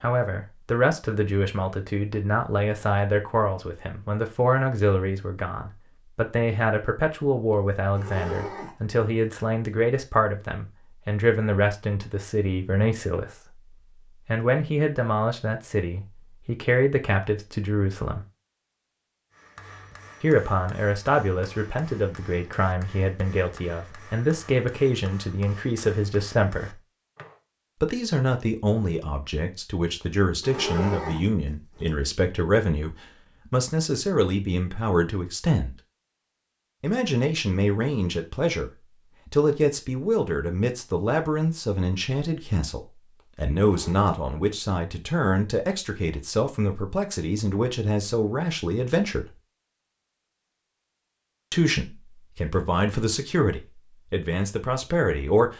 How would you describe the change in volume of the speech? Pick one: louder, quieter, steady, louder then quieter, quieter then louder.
steady.